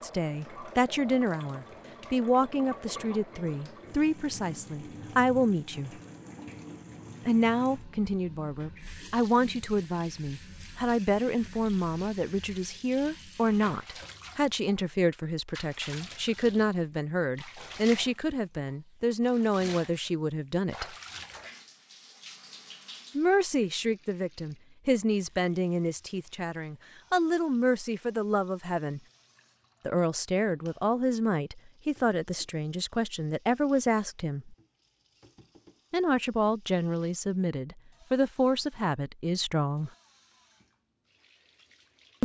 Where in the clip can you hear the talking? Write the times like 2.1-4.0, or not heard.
0.0-5.9, 7.2-20.9, 23.1-29.0, 29.9-34.5, 35.9-39.9.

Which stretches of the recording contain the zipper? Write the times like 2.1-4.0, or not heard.
not heard.